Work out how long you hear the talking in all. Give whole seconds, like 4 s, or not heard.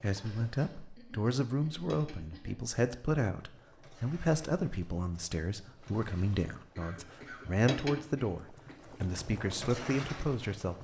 11 s.